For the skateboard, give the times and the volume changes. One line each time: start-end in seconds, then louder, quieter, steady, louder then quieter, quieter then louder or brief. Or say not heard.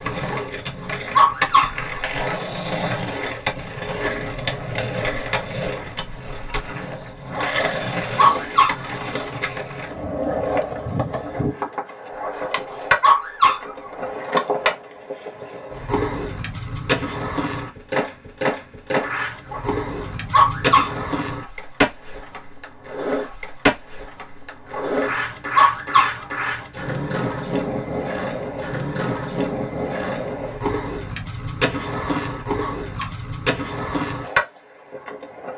0.0-35.5 steady.